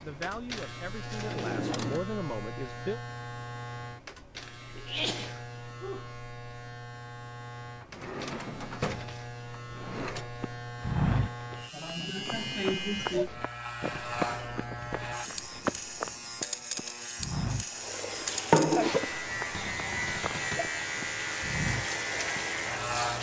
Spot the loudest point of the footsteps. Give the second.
11 s.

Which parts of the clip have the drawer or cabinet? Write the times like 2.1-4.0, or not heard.
1.2-2.0, 7.8-10.3, 19.5-20.7.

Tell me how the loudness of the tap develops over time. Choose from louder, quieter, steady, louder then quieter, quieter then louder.
quieter then louder.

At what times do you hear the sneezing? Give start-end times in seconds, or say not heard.
4.7-6.0, 11.7-13.3.